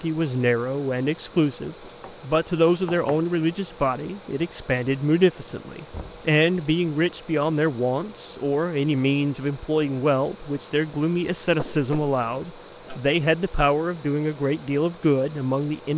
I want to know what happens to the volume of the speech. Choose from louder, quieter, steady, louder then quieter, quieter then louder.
steady.